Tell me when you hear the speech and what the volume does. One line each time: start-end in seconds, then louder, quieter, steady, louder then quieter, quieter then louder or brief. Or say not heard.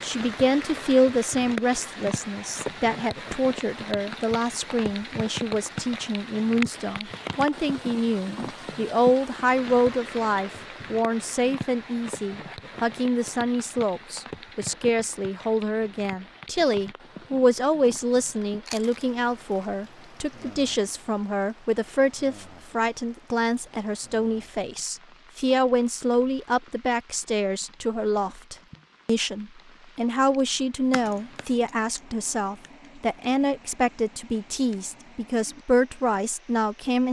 0.0-37.0 steady.